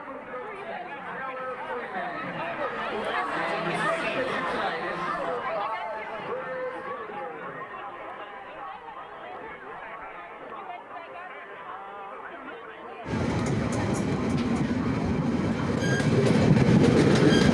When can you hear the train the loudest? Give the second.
17 s.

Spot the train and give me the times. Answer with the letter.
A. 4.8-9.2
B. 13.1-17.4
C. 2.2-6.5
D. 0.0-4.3
B.